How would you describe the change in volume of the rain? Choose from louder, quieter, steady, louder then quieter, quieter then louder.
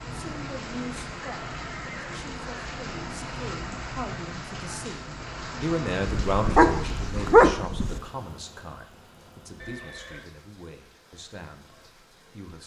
quieter.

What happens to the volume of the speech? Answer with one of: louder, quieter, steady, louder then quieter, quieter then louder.
louder then quieter.